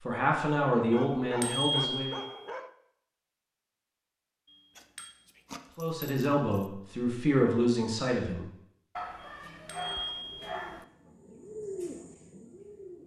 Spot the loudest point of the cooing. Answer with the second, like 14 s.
12 s.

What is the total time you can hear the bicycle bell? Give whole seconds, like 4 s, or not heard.
4 s.